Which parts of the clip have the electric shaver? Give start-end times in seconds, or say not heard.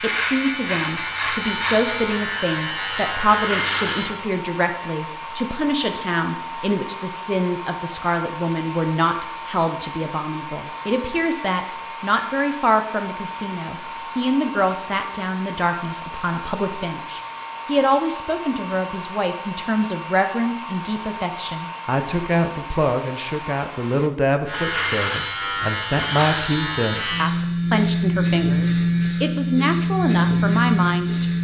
0.0-4.2, 24.4-31.4.